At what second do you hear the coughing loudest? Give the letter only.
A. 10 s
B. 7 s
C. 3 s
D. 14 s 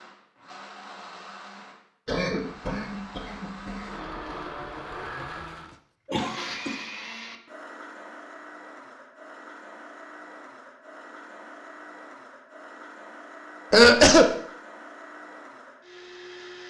D.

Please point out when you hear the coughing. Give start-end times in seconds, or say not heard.
2.0-3.9, 6.0-6.7, 13.7-14.3.